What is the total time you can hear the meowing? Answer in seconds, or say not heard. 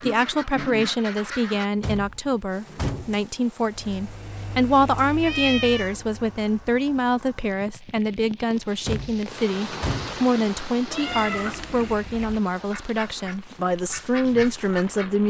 3 s.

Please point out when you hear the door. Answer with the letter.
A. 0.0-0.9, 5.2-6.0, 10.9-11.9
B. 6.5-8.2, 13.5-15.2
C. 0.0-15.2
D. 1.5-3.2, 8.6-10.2
D.